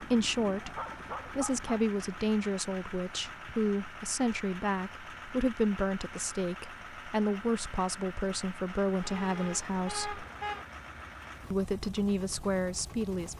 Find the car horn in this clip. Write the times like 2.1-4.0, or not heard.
9.0-10.7.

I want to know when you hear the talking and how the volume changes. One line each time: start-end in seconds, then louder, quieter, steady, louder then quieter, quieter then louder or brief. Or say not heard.
0.0-10.2 steady
11.5-13.3 brief.